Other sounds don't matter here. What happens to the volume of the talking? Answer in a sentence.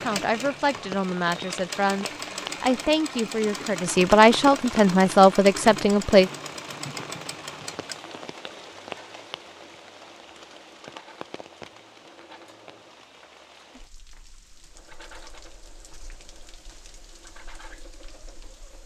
The volume of the talking goes up.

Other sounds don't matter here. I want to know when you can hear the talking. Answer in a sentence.
You can hear the talking from 0.0 to 6.3 s.